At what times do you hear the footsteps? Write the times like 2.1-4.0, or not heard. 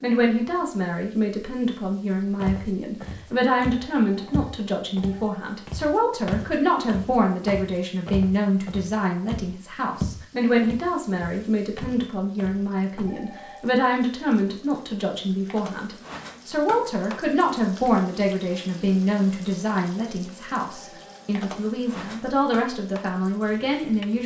2.4-13.2.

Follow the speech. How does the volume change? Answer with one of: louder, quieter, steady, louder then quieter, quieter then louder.
steady.